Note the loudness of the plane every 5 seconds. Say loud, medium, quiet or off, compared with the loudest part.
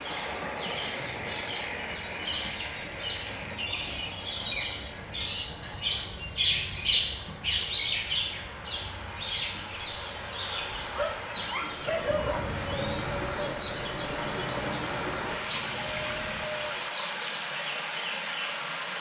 off, off, loud, loud.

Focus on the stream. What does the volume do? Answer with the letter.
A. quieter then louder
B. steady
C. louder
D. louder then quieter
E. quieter
A.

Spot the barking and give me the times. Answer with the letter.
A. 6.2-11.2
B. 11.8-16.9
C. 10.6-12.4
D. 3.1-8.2
C.